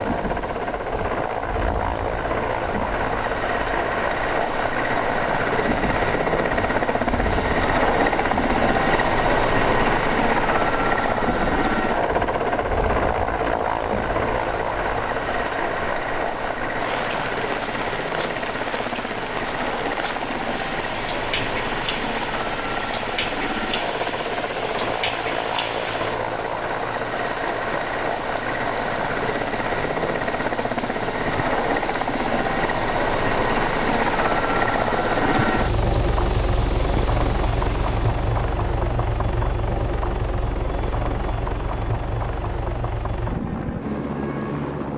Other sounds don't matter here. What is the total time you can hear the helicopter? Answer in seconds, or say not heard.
45 s.